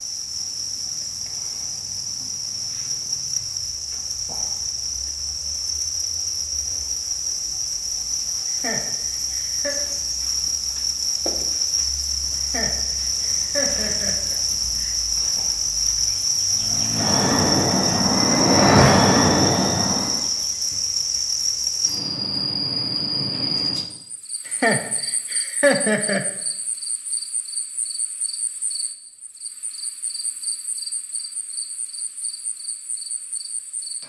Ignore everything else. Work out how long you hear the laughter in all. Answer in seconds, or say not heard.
6 s.